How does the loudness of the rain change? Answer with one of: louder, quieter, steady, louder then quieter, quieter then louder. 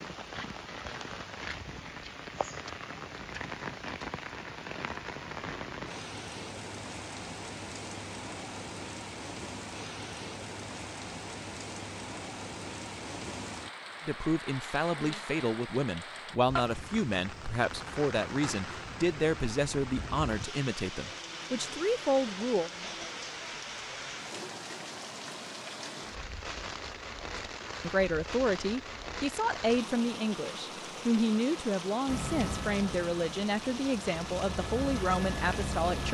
steady.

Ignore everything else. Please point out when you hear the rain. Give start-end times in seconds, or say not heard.
0.0-36.0.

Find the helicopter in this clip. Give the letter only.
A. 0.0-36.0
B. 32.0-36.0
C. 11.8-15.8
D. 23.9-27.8
B.